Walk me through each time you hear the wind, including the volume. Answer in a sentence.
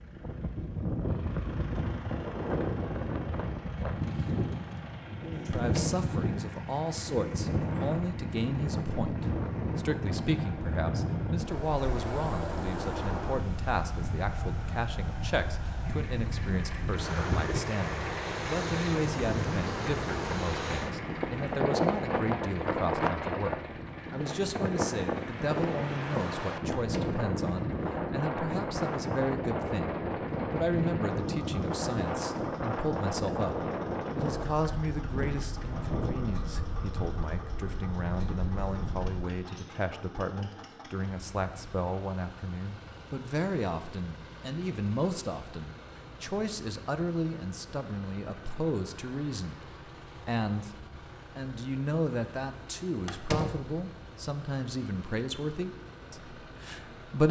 You can hear the wind from 0.0 to 39.5 s, at a steady volume.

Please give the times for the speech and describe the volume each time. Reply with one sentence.
You can hear the speech from 5.5 to 57.2 s, at a steady volume.